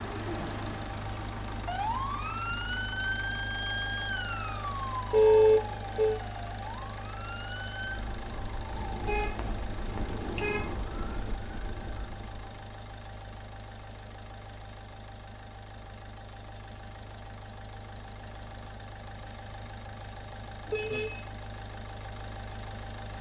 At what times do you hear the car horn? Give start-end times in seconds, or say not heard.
5.1-6.2, 9.1-10.8, 20.6-21.2.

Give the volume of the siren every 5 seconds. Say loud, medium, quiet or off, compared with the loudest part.
loud, medium, medium, off, off.